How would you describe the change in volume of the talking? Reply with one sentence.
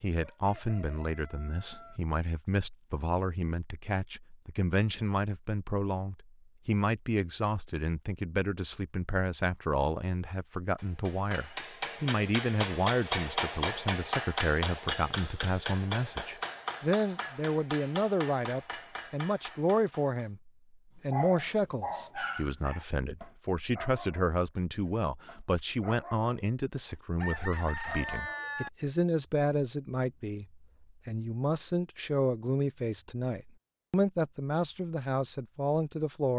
The volume of the talking stays about the same.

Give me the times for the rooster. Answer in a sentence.
The rooster can be heard from 0.1 to 2.0 s and from 27.1 to 28.7 s.